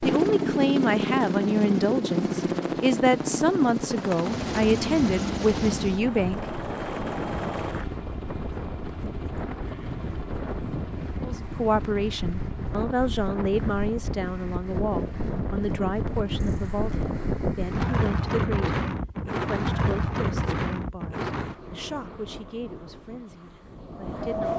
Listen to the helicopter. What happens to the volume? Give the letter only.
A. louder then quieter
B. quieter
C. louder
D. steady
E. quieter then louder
B.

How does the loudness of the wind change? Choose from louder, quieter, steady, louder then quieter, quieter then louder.
louder then quieter.